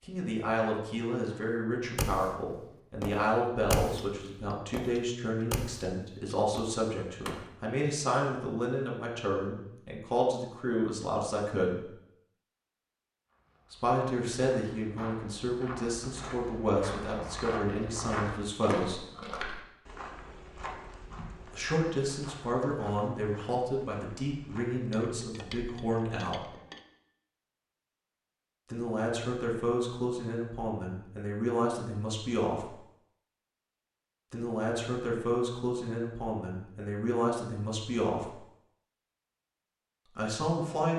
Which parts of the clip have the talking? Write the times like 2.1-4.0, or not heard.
0.0-11.8, 13.7-19.1, 21.5-26.5, 28.7-32.8, 34.3-38.4, 40.0-40.9.